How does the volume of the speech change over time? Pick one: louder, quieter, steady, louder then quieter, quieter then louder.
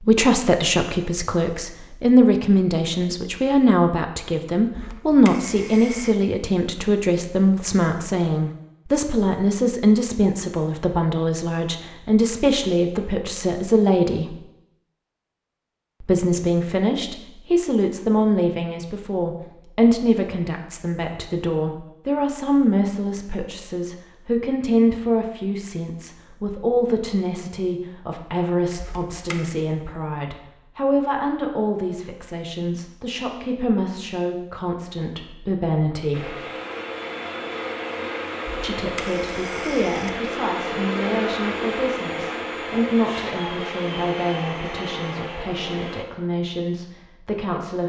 quieter.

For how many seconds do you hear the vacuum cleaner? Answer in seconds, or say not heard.
10 s.